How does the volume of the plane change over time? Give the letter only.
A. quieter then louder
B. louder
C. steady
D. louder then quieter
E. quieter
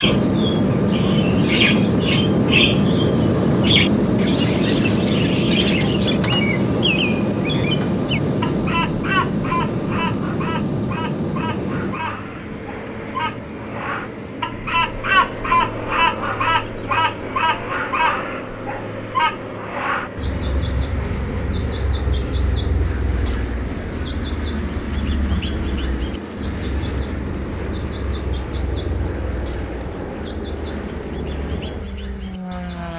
E.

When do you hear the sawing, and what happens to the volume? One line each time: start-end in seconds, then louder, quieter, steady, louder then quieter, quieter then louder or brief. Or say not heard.
not heard.